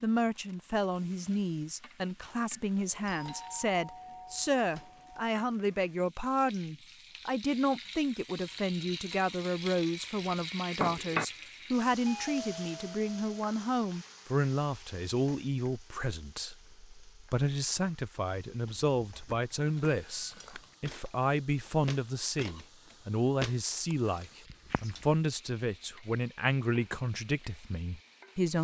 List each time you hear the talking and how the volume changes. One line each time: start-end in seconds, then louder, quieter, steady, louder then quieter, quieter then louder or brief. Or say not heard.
0.0-28.5 steady.